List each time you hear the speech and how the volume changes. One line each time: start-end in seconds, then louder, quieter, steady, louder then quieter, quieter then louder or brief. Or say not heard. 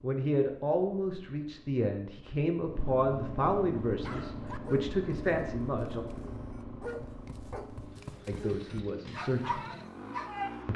0.0-6.0 steady
8.2-9.6 brief.